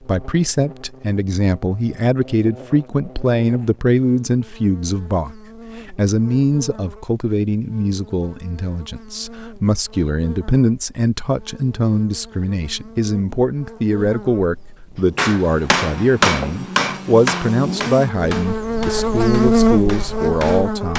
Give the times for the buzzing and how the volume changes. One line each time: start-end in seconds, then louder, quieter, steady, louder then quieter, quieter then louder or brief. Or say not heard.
0.0-20.9 louder.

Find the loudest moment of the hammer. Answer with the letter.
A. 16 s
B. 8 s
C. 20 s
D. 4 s
A.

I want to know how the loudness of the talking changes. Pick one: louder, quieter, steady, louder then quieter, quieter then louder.
steady.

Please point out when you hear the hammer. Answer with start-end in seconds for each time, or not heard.
15.2-20.9.